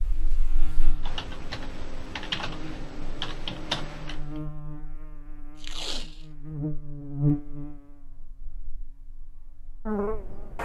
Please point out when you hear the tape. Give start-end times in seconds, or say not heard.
5.5-6.2.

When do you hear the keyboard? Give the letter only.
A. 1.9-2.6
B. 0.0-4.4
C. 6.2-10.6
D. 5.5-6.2
B.